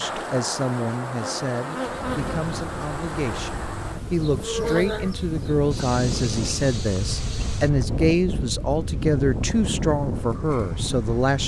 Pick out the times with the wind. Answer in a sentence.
The wind can be heard from 1.8 to 11.4 s.